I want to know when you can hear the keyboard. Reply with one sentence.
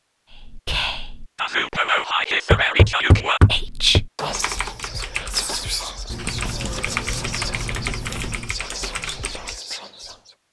The keyboard can be heard from 4.2 to 9.6 s.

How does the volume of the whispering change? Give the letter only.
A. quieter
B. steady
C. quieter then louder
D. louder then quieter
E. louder
A.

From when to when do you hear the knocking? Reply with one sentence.
You can hear the knocking from 2.5 to 4.0 s.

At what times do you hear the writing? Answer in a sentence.
The writing can be heard from 6.1 to 8.6 s.